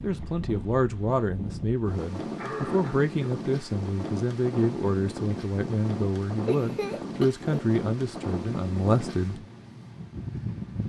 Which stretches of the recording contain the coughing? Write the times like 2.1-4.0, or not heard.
2.4-3.4, 6.5-7.7.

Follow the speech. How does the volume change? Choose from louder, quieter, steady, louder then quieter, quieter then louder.
steady.